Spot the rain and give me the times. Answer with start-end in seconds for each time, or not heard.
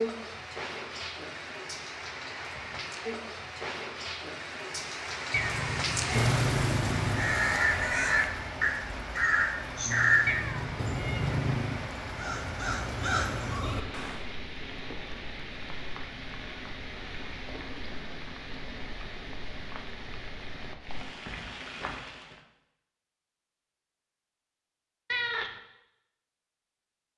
0.0-22.4.